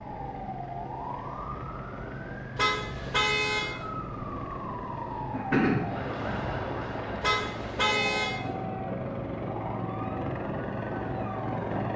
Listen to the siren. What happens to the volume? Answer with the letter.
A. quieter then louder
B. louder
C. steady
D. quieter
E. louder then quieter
E.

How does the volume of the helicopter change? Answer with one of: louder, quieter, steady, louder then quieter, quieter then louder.
louder.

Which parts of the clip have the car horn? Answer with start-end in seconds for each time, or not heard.
2.5-3.8, 7.2-8.4.